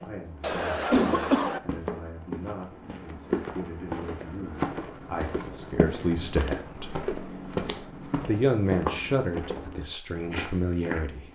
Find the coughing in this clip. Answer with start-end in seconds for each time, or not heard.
0.4-1.6.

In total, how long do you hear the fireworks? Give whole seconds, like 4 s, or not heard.
not heard.